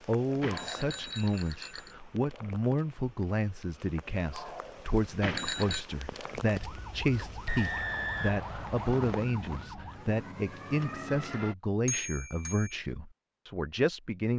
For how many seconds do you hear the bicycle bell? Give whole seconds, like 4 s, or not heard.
3 s.